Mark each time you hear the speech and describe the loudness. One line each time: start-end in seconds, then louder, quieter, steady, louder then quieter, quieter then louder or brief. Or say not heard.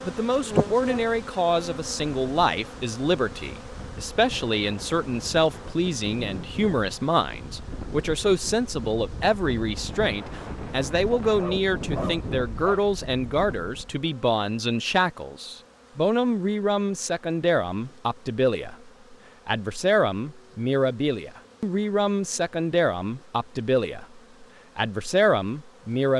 0.1-26.1 steady.